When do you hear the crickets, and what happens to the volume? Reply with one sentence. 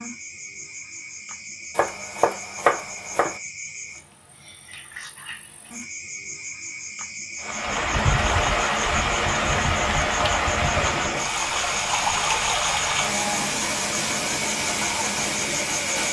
You can hear the crickets from 0.0 to 16.0 s, getting louder.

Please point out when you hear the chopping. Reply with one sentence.
You can hear the chopping from 1.8 to 3.4 s.